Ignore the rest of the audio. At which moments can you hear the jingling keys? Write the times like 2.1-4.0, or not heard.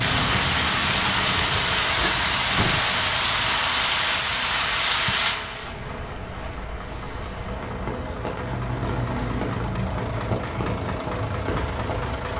not heard.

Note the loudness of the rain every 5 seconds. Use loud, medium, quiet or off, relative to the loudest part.
loud, medium, medium.